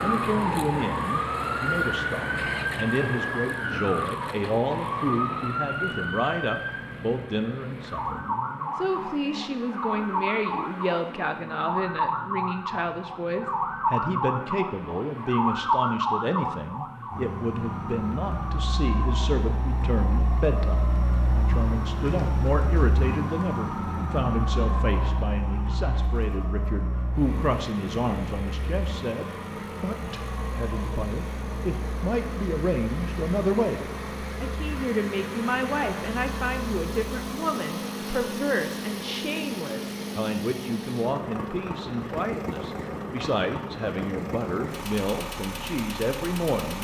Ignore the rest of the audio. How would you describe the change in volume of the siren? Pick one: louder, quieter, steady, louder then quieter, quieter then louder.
quieter.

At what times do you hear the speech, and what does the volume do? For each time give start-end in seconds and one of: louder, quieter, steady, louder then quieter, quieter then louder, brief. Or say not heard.
0.0-46.7 steady.